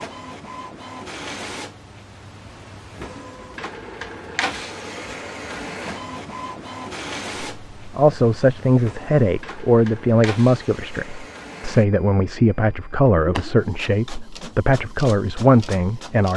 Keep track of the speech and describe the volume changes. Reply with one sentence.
The loudness of the speech stays about the same.